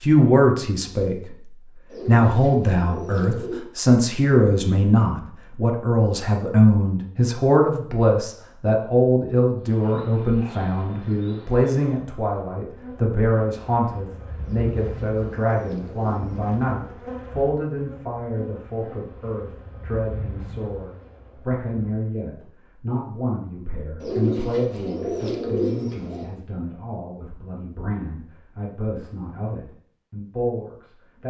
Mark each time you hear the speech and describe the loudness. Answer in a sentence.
The speech can be heard from 0.0 to 31.2 s, getting quieter.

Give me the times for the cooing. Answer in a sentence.
You can hear the cooing from 1.9 to 3.6 s, from 14.4 to 16.4 s and from 24.0 to 26.3 s.